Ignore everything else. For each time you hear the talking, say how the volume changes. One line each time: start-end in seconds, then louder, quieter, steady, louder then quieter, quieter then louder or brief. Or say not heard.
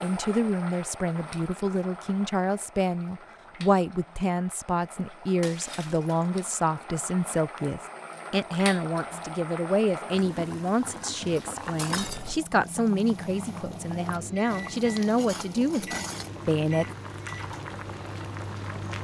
0.0-16.9 steady.